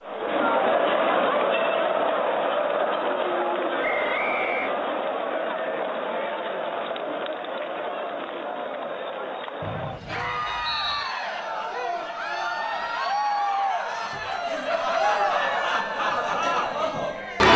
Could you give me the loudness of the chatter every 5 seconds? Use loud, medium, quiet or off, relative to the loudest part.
loud, medium, medium, loud.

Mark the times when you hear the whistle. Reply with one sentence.
You can hear the whistle from 3.8 to 4.7 s and from 9.6 to 11.2 s.